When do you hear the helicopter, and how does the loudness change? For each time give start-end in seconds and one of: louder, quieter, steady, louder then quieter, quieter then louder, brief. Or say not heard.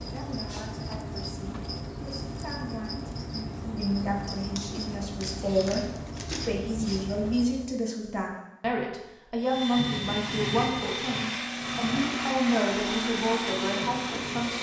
9.4-14.5 steady.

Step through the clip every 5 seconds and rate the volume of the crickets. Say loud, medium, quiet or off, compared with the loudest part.
loud, loud, off.